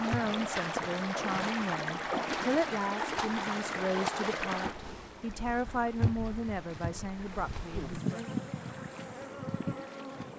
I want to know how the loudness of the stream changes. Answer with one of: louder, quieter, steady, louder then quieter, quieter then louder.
quieter.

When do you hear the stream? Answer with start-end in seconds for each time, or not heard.
0.0-10.3.